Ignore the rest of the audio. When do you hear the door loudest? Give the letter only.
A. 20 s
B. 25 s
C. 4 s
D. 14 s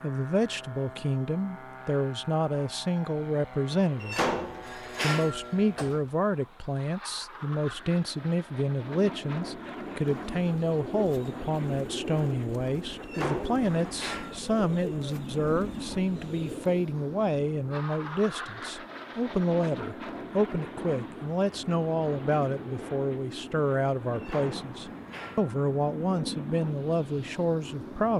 C.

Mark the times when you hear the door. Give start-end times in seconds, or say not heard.
4.0-6.0, 13.0-14.3, 24.1-25.6.